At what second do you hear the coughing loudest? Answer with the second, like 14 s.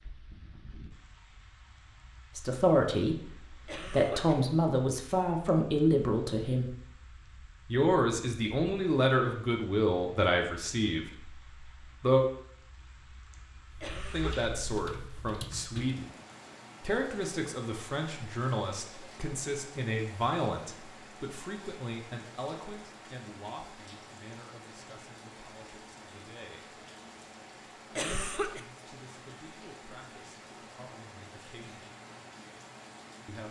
28 s.